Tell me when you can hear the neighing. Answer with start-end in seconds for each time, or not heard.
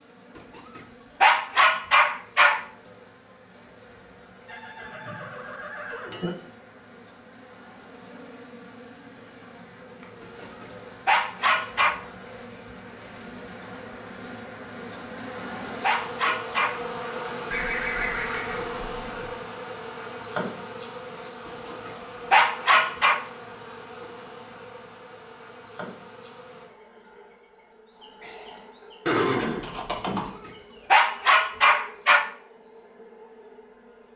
4.5-6.3, 17.5-19.4, 29.1-30.3.